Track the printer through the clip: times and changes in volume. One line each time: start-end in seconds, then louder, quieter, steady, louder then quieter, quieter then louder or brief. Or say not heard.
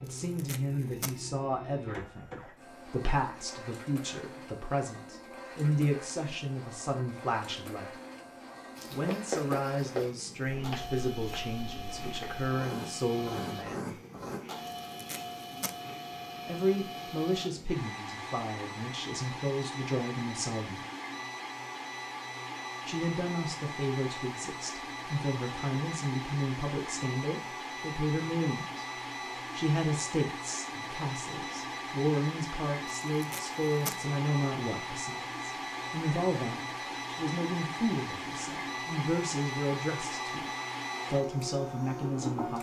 0.0-42.5 louder.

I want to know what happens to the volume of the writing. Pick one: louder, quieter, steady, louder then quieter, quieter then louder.
quieter then louder.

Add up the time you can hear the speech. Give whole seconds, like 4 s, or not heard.
36 s.